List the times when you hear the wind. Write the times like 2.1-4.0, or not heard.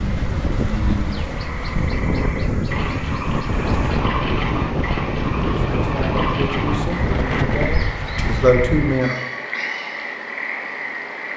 0.0-9.1.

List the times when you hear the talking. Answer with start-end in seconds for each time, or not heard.
5.6-9.2.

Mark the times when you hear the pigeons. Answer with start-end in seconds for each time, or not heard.
not heard.